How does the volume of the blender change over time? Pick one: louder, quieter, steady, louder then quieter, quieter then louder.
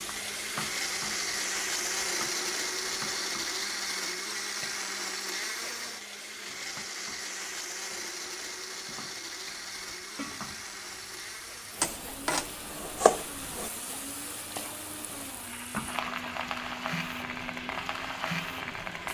quieter.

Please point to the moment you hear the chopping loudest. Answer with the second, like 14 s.
13 s.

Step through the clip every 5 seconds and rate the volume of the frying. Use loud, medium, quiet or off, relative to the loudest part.
medium, quiet, medium, loud.